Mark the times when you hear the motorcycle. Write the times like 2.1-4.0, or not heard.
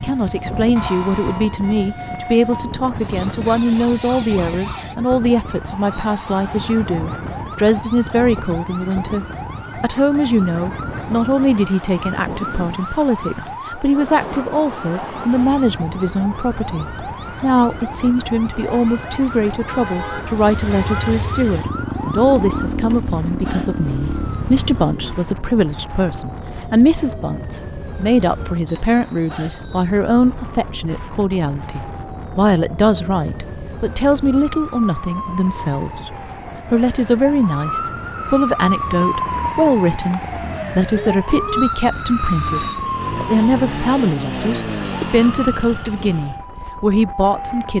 20.2-25.2, 37.8-46.3.